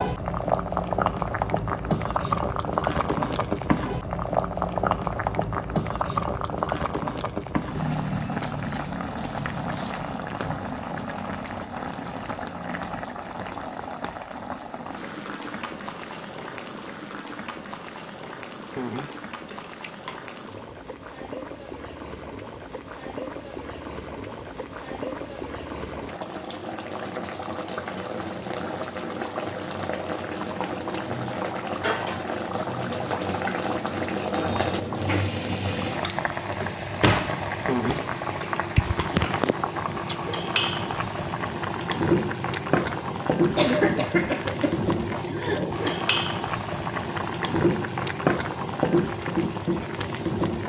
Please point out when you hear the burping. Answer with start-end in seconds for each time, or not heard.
not heard.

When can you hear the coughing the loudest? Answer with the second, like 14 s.
44 s.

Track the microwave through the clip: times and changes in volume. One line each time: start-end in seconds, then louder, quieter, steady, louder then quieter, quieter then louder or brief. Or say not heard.
not heard.